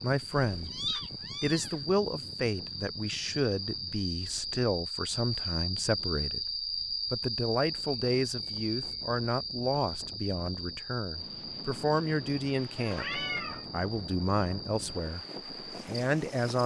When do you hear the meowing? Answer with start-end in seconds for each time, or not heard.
0.3-1.9, 12.8-13.7.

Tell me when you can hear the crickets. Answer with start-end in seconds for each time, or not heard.
0.0-16.6.